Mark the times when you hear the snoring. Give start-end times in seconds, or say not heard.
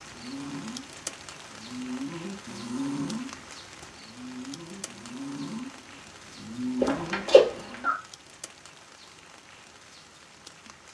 0.0-8.0.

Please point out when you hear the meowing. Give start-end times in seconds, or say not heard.
6.8-8.0.